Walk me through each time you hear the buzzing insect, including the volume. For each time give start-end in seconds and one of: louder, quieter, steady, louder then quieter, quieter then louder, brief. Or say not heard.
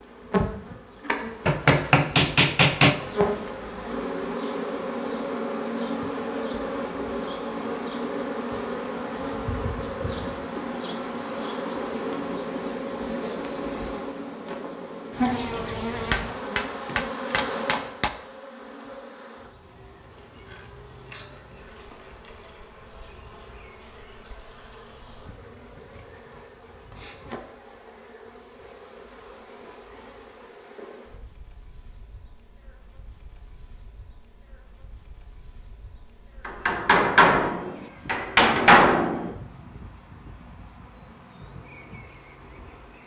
0.0-43.0 quieter.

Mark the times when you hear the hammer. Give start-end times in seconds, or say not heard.
1.4-3.0, 16.1-18.1, 36.5-39.4.